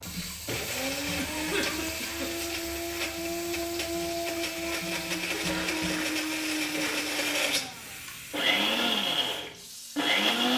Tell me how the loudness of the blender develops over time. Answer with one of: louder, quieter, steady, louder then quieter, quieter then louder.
louder.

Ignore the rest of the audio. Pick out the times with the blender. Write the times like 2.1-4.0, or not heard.
0.0-10.5.